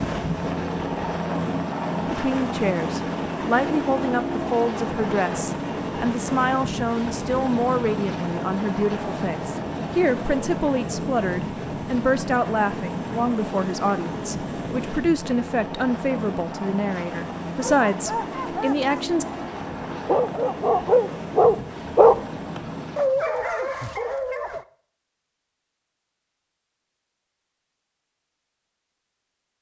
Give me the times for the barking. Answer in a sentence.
You can hear the barking from 17.6 to 24.6 s.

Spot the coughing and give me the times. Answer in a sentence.
The coughing can't be heard in this clip.